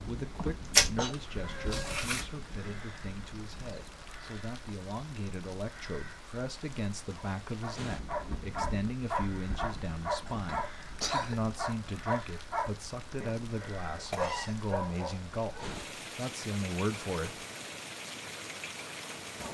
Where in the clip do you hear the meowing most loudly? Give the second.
1 s.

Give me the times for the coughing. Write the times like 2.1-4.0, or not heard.
0.3-1.1, 10.2-11.3, 14.1-14.6.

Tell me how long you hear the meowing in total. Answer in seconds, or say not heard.
2 s.